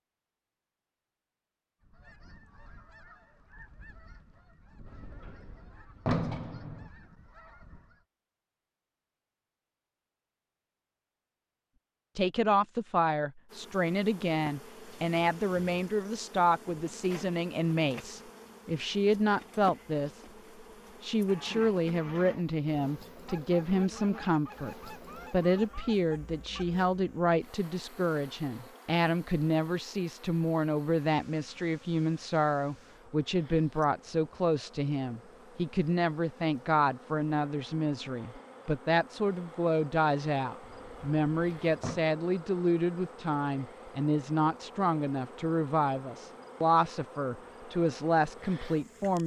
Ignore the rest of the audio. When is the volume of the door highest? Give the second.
6 s.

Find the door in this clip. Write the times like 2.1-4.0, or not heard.
4.8-6.8, 40.6-42.0.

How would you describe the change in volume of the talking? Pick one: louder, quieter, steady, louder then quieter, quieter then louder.
steady.